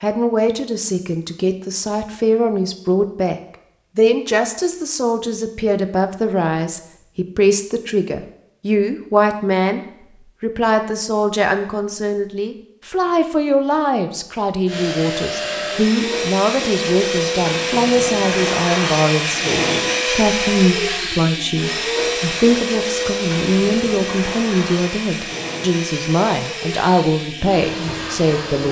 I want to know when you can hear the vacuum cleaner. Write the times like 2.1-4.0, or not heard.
14.7-28.6.